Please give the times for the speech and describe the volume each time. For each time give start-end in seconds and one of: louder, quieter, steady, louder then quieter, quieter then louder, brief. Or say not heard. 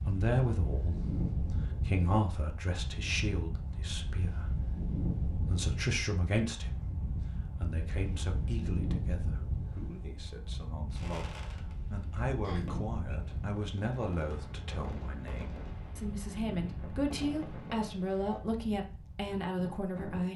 0.0-20.3 quieter then louder.